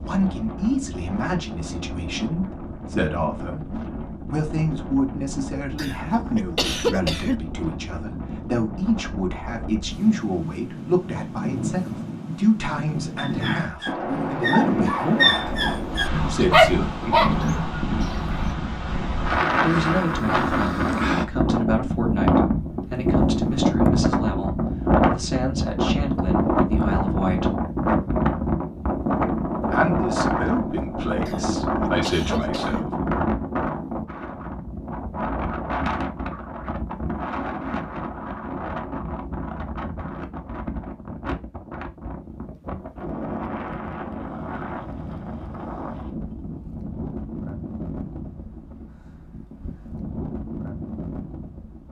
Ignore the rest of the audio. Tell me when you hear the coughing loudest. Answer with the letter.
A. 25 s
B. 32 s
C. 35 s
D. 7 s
D.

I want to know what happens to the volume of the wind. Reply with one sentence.
The volume of the wind goes up, then down.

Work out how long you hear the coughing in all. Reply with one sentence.
The coughing can be heard for 3 seconds in total.